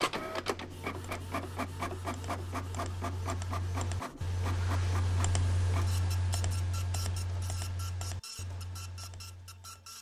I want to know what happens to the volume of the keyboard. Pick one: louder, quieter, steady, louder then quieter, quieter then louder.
louder then quieter.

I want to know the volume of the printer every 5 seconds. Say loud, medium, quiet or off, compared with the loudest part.
loud, medium.